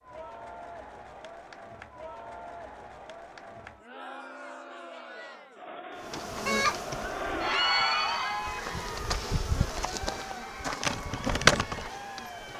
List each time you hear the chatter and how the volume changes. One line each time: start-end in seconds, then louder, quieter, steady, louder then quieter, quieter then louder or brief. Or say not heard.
0.0-12.5 louder then quieter.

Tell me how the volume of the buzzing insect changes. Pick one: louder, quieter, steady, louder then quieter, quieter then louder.
quieter then louder.